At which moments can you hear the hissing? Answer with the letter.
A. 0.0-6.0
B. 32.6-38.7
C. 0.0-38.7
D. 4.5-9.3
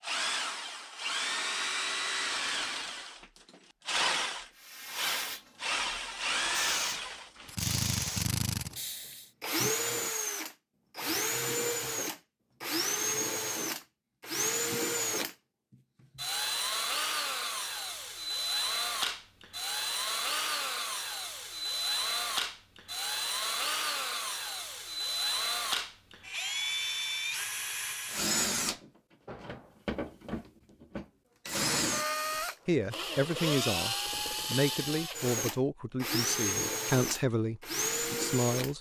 D.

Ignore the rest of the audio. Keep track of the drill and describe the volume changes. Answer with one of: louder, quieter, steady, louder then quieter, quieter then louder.
steady.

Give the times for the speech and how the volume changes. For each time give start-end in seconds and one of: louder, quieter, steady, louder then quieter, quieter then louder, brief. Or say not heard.
32.6-38.7 steady.